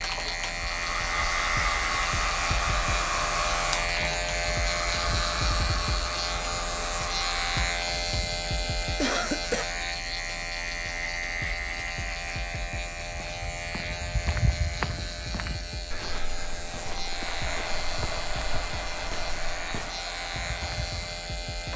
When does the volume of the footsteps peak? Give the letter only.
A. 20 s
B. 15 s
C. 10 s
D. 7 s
B.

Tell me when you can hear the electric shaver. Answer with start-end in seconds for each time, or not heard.
0.0-21.7.